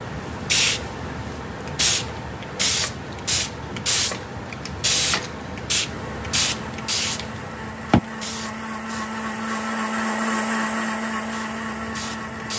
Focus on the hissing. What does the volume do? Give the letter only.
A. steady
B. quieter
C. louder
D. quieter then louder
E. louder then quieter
B.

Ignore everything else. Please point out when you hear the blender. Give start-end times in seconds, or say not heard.
5.8-12.5.